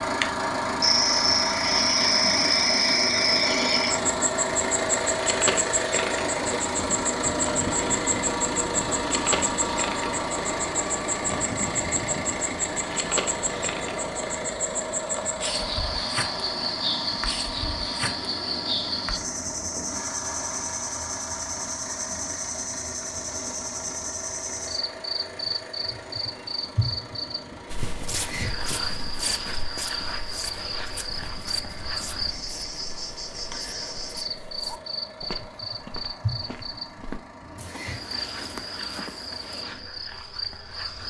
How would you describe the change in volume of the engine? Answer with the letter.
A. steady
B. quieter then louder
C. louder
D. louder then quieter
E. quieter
E.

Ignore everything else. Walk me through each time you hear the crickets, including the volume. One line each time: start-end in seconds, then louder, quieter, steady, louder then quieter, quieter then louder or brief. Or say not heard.
0.0-41.0 quieter.